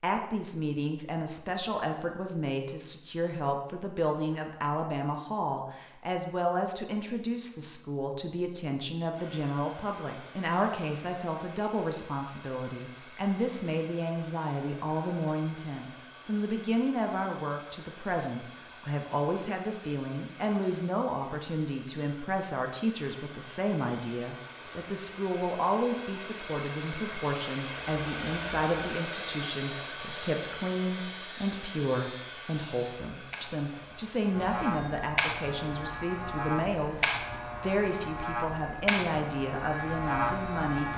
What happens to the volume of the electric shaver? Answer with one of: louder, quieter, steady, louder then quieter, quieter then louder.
louder.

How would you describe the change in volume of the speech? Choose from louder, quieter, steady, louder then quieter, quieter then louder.
steady.